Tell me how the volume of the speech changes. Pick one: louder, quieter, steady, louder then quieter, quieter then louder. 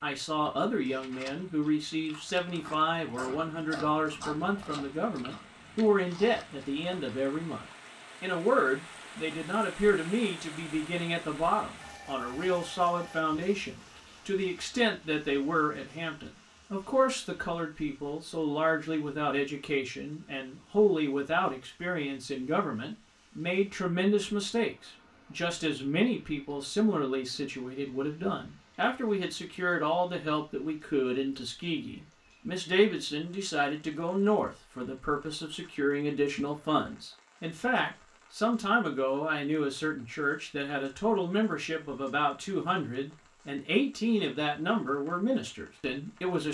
steady.